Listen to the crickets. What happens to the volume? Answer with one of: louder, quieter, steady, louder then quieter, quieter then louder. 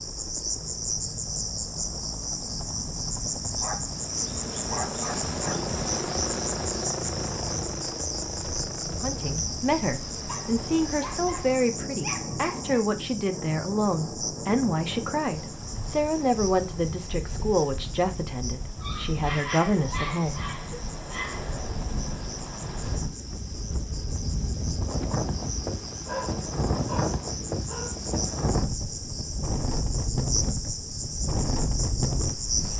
quieter then louder.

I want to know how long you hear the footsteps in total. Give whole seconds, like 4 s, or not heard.
not heard.